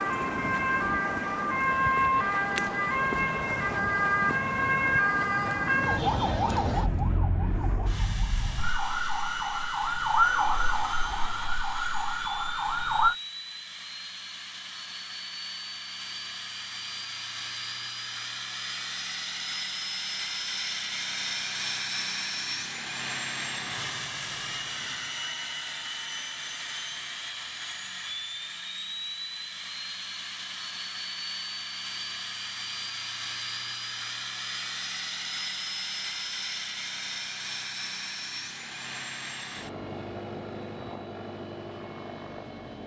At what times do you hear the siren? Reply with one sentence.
You can hear the siren from 0.0 to 13.2 s.